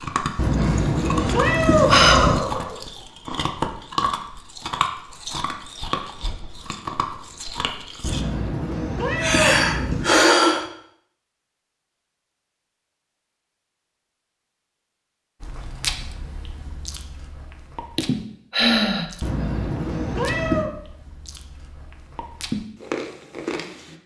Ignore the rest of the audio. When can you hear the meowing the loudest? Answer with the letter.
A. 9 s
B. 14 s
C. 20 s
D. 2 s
D.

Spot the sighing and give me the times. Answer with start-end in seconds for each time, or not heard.
0.8-2.8, 9.2-10.7, 17.9-19.1.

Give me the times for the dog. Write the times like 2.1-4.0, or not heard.
not heard.